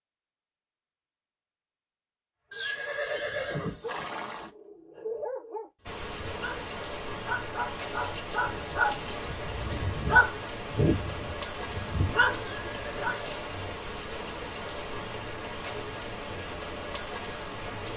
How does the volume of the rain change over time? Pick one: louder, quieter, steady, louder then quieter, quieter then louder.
steady.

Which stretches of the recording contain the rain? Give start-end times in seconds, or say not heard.
5.8-17.9.